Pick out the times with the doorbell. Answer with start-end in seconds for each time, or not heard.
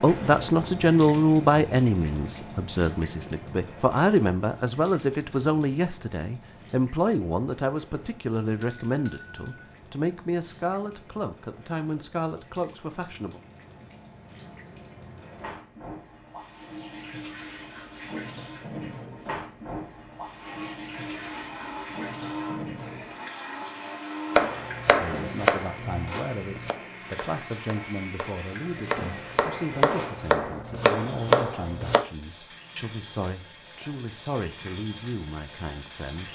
8.6-9.7.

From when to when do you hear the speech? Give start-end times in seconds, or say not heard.
0.0-13.4, 24.9-36.2.